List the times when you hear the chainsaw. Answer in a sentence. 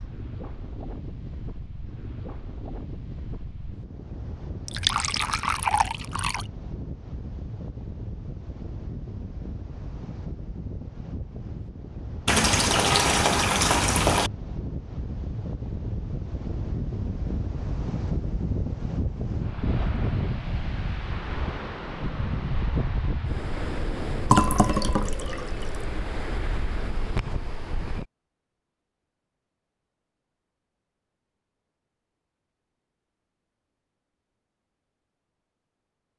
You can't hear the chainsaw here.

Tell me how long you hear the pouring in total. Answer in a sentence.
The pouring can be heard for 5 seconds in total.